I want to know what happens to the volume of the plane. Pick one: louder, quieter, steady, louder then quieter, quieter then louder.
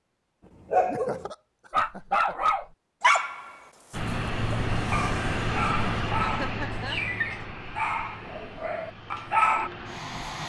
quieter.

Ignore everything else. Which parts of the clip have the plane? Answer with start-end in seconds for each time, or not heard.
3.9-10.4.